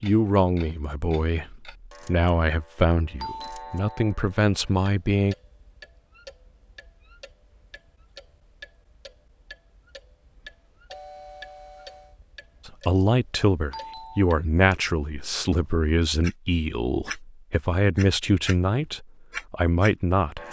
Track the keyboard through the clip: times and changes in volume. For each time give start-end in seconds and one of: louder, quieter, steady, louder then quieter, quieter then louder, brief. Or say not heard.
not heard.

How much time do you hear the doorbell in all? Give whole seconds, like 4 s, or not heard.
3 s.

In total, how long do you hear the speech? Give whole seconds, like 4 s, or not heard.
13 s.